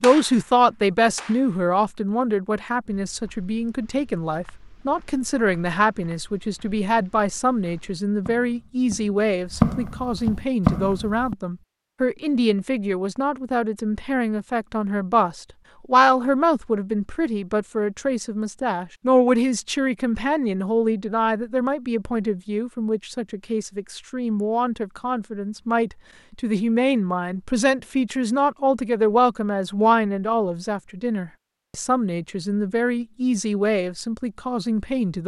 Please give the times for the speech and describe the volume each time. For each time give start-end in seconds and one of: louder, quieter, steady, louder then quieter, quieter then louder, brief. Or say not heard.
0.0-35.2 steady.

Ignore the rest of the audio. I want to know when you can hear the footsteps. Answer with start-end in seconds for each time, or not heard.
2.9-11.3.